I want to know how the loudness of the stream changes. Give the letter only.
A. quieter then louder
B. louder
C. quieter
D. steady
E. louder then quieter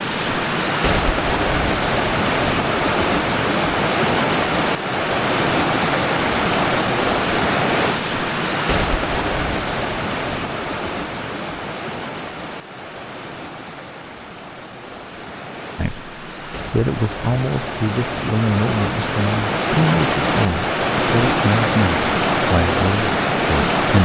A.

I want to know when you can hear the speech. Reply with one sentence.
The speech can be heard from 15.8 to 24.0 s.